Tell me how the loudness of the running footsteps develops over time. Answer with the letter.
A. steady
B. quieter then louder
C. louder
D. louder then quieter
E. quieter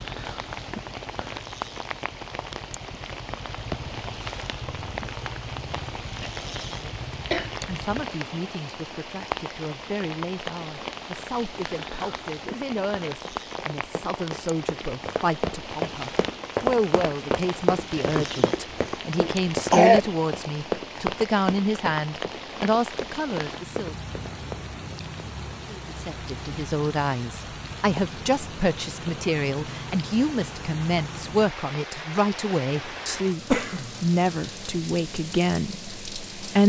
D.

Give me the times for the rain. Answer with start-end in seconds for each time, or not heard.
0.0-36.6.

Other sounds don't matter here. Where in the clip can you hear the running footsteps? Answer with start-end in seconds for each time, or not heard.
13.2-24.6.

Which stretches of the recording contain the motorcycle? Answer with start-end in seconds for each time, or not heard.
0.0-8.1.